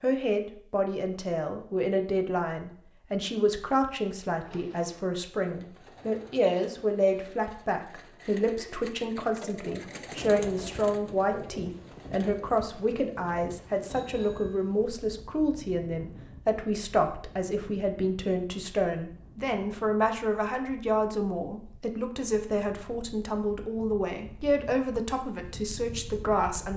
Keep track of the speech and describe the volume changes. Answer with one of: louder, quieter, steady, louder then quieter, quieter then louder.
steady.